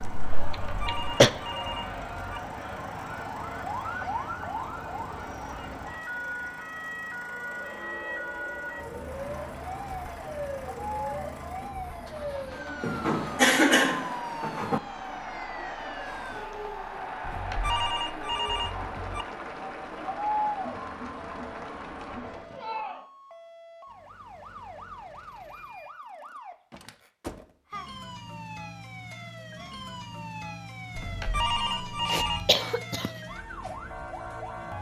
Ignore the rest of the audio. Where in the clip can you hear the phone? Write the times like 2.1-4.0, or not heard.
0.6-2.4, 17.2-19.2, 30.9-32.5.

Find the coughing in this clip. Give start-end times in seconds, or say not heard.
0.0-1.3, 12.8-14.8, 32.0-33.1.